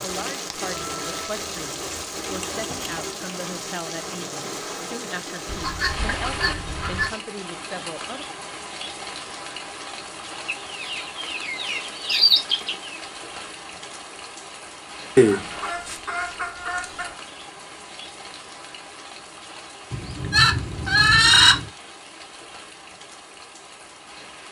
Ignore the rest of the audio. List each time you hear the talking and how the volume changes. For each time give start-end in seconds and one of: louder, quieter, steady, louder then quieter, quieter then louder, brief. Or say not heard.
0.0-8.2 steady.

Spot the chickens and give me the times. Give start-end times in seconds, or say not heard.
0.7-3.1, 5.5-7.2, 10.4-12.9, 15.2-17.1, 19.9-21.6.